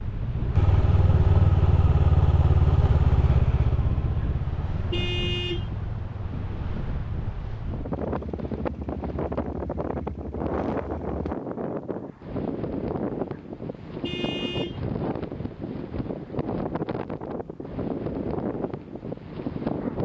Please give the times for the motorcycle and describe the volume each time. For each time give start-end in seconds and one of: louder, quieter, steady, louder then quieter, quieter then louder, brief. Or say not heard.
0.0-11.3 quieter.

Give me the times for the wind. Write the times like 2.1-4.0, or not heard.
0.0-20.0.